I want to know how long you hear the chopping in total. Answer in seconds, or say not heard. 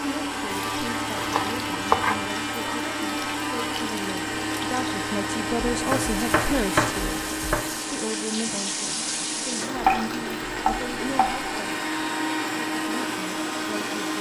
5 s.